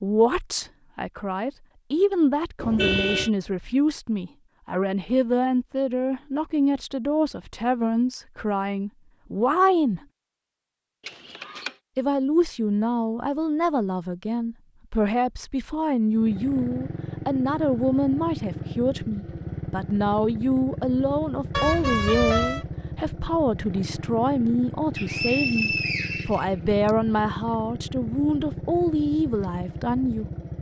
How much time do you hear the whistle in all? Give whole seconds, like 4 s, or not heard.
2 s.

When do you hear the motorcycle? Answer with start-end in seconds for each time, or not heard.
16.1-30.5.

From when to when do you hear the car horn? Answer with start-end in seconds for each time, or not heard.
2.5-3.3, 11.1-11.8, 21.5-22.6.